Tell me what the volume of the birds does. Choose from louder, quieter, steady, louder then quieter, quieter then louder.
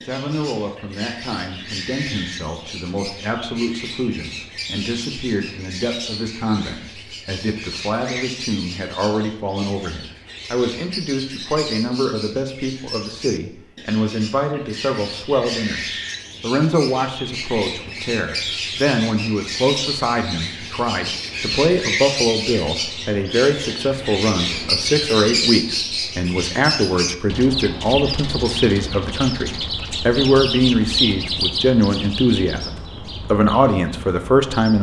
louder.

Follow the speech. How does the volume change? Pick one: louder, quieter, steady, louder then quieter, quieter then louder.
louder.